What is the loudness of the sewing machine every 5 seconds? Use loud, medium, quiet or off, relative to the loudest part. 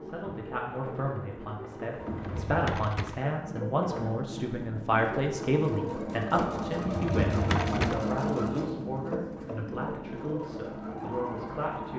medium, loud, medium.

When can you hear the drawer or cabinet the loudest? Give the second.
8 s.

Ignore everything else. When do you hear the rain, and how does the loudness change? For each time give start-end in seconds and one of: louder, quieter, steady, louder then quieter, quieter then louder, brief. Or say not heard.
not heard.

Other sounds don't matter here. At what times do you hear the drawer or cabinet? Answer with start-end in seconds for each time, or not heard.
2.0-3.3, 6.9-8.1.